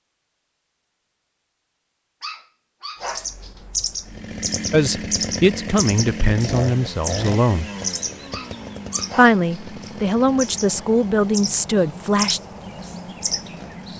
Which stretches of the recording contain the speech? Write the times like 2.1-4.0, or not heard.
4.7-7.7, 9.2-12.4.